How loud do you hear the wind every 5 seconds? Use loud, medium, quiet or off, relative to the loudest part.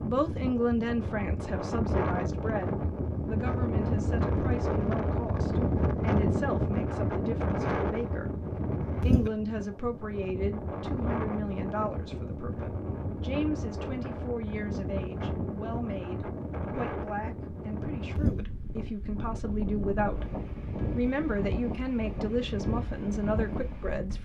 loud, loud, medium, medium, medium.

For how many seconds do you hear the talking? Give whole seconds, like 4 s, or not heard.
24 s.